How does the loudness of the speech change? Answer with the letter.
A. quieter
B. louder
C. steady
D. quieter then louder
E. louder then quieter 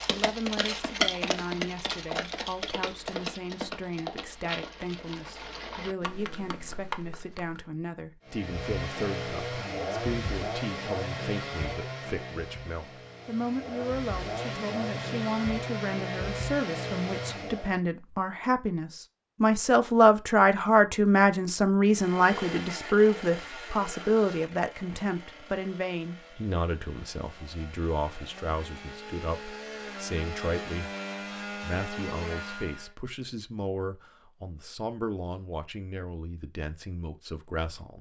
E.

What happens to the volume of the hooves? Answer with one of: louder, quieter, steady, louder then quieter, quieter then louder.
quieter.